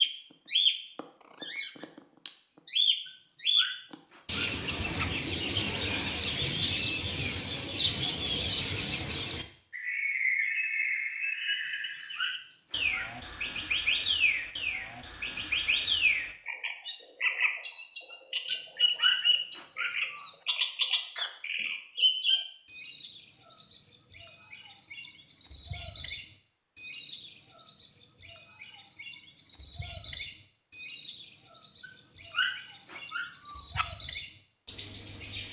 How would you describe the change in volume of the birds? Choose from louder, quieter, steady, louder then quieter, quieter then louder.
steady.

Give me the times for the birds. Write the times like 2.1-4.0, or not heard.
0.0-35.4.